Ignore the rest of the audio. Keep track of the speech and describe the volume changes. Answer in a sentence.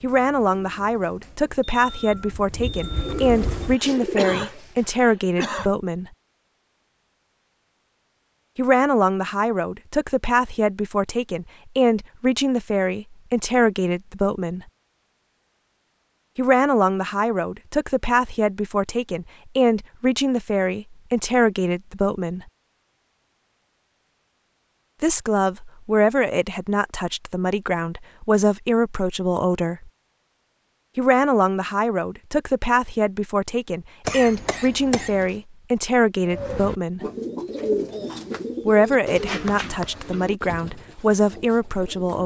The volume of the speech stays about the same.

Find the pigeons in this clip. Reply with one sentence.
The pigeons can be heard from 0.0 to 5.0 s and from 36.2 to 42.2 s.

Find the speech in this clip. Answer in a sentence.
You can hear the speech from 0.0 to 6.1 s, from 8.6 to 14.7 s, from 16.4 to 22.4 s, from 25.0 to 29.9 s, from 30.9 to 37.0 s and from 38.6 to 42.2 s.